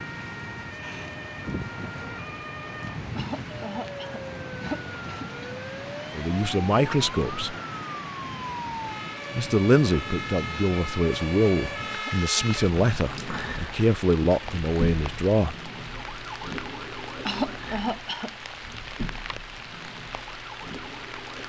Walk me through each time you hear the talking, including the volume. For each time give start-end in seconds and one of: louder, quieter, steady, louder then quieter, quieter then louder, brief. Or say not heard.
6.1-7.5 brief
9.3-15.6 steady.